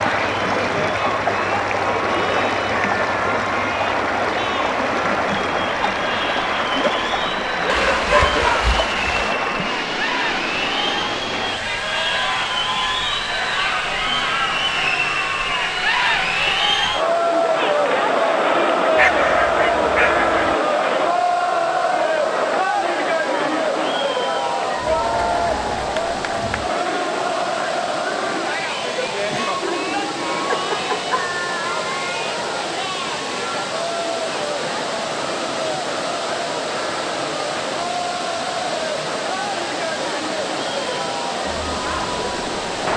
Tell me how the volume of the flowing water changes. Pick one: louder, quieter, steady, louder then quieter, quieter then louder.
quieter then louder.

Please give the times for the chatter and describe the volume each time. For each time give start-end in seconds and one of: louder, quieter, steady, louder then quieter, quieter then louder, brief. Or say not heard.
0.0-42.9 louder then quieter.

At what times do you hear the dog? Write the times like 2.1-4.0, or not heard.
7.7-9.3, 18.9-20.6, 29.3-31.2.